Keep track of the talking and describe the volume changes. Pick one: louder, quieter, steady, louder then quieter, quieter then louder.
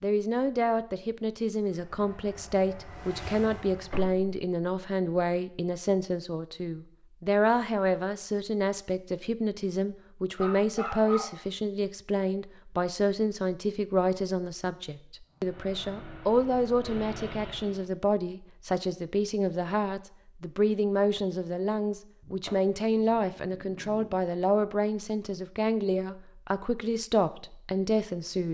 steady.